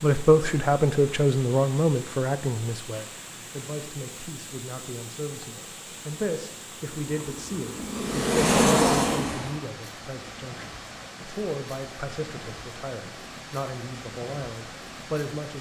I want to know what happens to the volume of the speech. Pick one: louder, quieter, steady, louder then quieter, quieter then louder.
quieter.